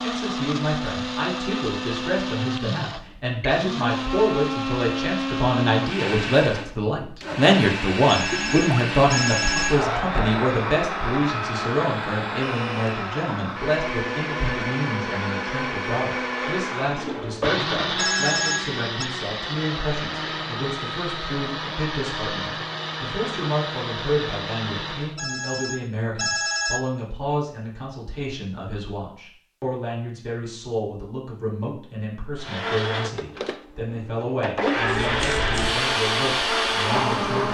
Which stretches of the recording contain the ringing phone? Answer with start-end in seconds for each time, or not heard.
8.1-9.7, 17.9-19.1, 25.1-26.8.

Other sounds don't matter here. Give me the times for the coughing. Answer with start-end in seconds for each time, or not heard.
not heard.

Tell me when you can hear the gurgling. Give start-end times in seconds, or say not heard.
8.3-8.9.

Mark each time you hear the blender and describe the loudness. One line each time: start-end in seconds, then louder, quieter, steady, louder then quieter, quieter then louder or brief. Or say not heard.
0.0-25.1 steady
32.4-37.4 quieter then louder.